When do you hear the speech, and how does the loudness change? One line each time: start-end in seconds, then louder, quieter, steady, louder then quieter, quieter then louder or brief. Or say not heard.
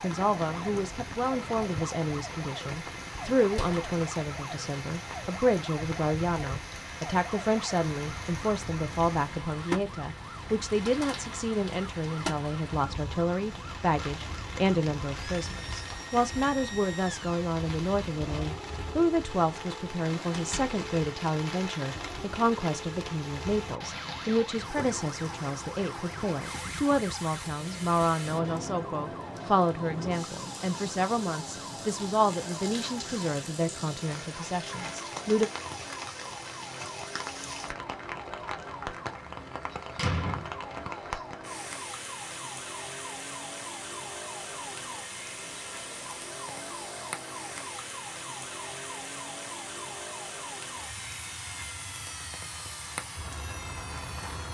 0.0-35.5 steady.